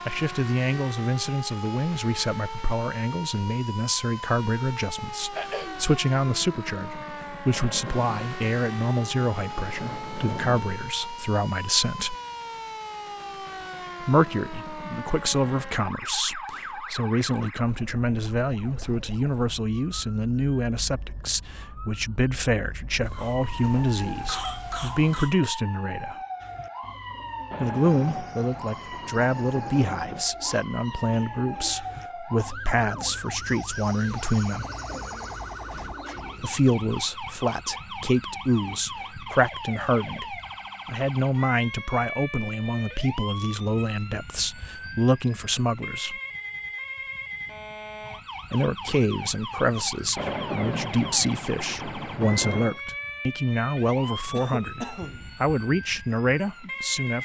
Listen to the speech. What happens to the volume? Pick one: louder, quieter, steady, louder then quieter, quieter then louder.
steady.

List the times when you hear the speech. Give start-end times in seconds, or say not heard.
0.1-12.2, 14.0-26.1, 27.6-34.6, 36.4-46.1, 48.5-57.2.